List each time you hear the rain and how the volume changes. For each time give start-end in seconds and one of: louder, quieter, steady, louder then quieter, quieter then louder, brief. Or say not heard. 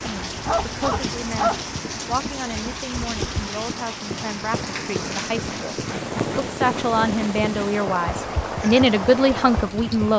0.0-10.1 steady.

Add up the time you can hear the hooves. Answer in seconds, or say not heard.
10 s.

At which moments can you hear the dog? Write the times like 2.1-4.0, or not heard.
0.2-1.6.